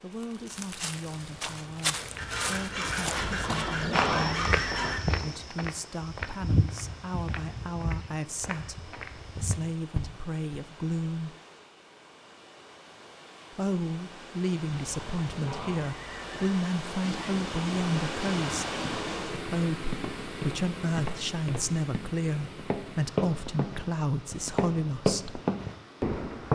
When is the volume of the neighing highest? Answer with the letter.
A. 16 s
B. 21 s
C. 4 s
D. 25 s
C.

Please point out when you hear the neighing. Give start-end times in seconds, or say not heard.
3.1-5.0, 14.8-16.5.